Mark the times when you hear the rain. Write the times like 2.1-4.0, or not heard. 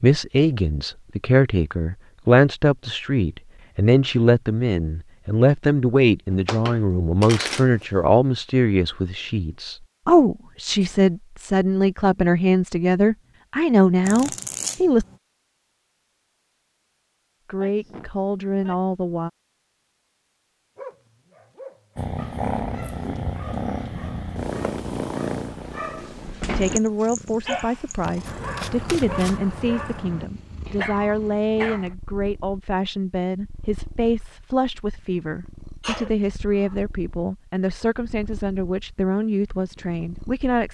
not heard.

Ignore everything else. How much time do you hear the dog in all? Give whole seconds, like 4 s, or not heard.
11 s.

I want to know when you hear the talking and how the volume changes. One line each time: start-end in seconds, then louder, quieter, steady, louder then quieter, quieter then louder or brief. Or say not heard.
0.0-15.1 steady
17.4-19.3 brief
26.6-40.6 steady.